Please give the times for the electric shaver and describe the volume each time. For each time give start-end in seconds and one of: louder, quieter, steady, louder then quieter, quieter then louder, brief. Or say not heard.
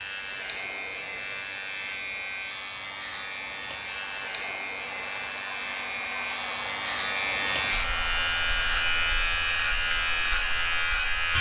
0.0-11.3 louder.